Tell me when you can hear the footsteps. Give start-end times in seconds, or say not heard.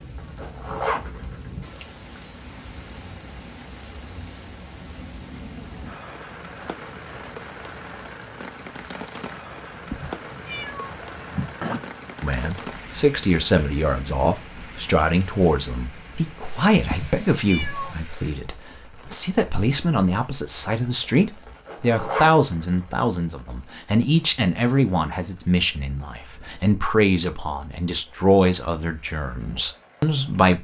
not heard.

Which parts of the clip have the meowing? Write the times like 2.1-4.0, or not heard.
9.8-11.8, 16.9-17.9.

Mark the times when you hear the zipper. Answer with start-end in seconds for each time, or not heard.
0.1-1.4, 21.4-22.9.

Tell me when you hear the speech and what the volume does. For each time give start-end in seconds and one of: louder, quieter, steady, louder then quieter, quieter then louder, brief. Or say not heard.
12.2-30.5 steady.